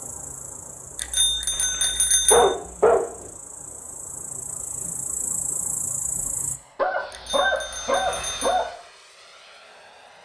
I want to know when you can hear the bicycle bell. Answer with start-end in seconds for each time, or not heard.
0.9-2.5, 7.1-8.7.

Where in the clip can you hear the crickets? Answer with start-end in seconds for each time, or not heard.
0.0-6.6.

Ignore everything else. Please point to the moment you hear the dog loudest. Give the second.
2 s.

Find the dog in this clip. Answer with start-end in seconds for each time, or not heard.
1.8-3.2, 6.8-8.8.